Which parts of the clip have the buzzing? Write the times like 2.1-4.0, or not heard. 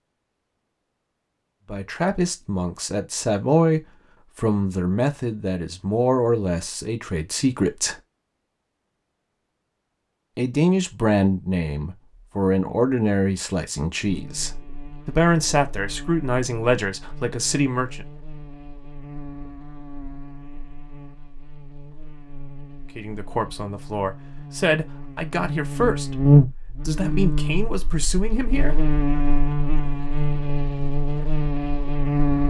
14.1-32.4.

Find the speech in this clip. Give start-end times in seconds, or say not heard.
1.7-8.0, 10.3-18.1, 22.9-28.8.